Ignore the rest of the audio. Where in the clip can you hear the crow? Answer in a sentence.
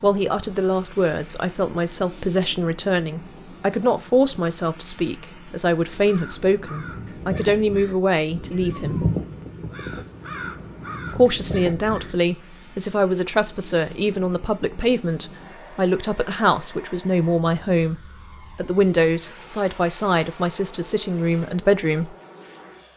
The crow can be heard from 5.8 to 12.2 s.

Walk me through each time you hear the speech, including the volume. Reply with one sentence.
You can hear the speech from 0.0 to 9.1 s, at a steady volume; and from 11.1 to 22.1 s, at a steady volume.